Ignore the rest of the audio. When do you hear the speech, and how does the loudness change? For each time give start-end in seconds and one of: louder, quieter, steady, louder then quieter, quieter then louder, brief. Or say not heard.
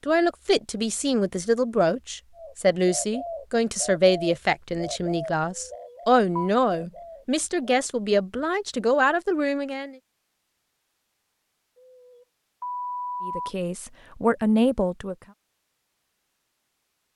0.0-9.9 steady
13.2-15.2 brief.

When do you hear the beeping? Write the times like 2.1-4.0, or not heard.
5.7-6.5, 11.8-13.6.